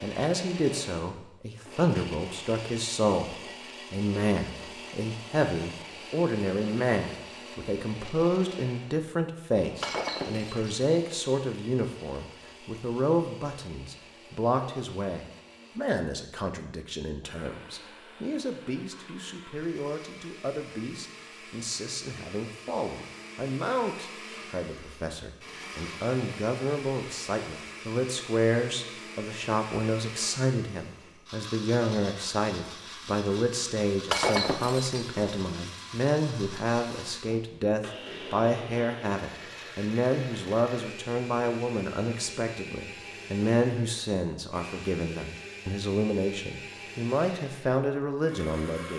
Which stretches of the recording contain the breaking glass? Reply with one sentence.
You can hear the breaking glass from 9.8 to 10.8 s and from 34.1 to 35.1 s.